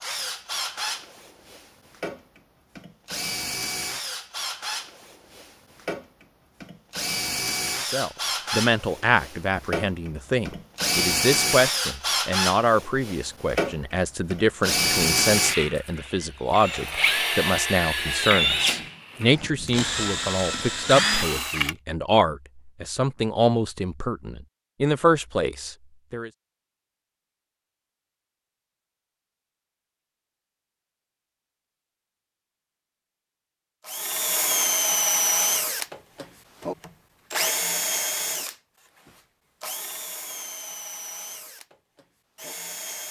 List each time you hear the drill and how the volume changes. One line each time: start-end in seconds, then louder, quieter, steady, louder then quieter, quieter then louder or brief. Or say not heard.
0.0-21.8 louder
33.9-43.0 quieter.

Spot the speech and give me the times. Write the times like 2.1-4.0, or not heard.
7.8-26.3.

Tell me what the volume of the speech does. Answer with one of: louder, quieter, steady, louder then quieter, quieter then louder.
steady.